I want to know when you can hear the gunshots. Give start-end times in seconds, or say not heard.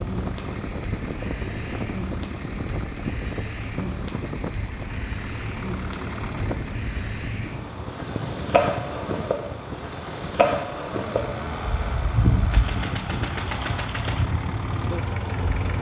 12.5-14.3.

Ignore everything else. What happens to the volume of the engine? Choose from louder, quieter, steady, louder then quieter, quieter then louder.
steady.